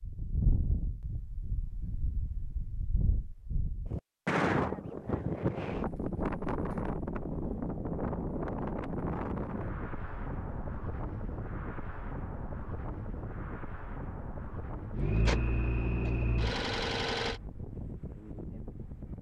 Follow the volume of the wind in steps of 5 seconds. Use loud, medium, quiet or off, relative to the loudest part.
loud, loud, medium, medium.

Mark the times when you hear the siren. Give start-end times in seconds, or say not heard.
not heard.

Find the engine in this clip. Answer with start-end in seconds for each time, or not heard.
14.9-17.4.